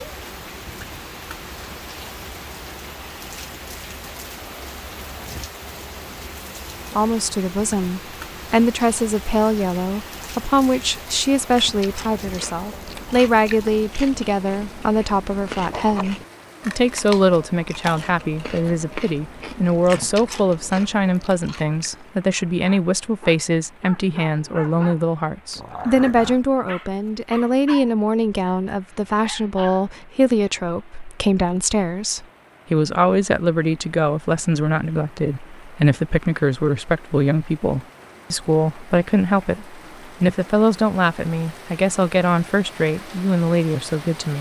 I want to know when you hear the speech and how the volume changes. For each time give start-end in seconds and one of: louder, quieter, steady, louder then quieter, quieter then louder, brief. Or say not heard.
6.9-44.3 steady.